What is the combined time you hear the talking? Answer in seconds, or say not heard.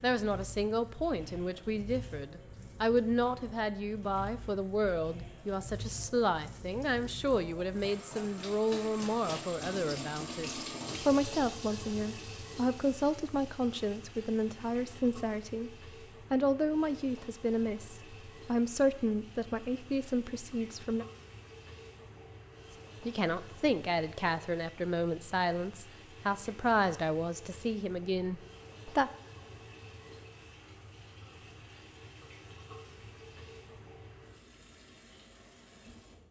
27 s.